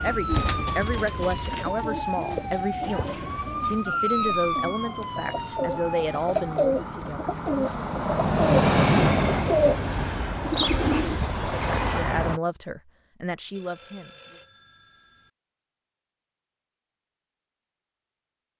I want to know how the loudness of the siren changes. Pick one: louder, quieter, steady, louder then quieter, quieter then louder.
louder then quieter.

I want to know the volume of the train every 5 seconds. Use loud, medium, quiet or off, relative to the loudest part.
quiet, loud, loud, off.